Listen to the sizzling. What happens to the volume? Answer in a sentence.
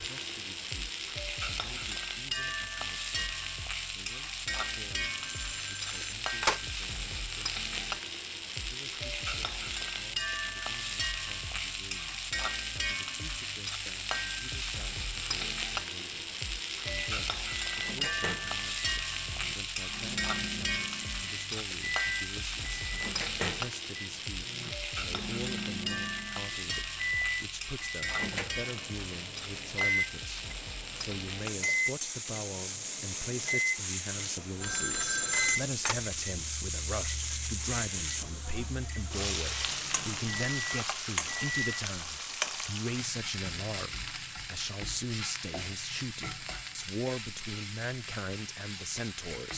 The volume of the sizzling stays about the same.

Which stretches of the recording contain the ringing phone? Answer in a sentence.
The ringing phone can be heard from 5.2 to 6.6 s and from 34.6 to 36.0 s.